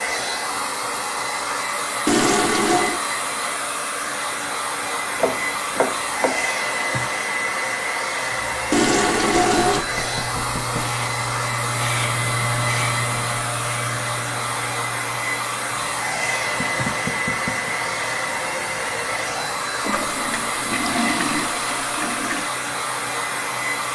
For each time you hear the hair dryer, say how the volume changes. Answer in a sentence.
The hair dryer can be heard from 0.0 to 23.9 s, at a steady volume.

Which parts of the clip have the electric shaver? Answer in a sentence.
The electric shaver can be heard from 8.2 to 23.9 s.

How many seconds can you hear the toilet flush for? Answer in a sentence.
You can hear the toilet flush for 5 seconds altogether.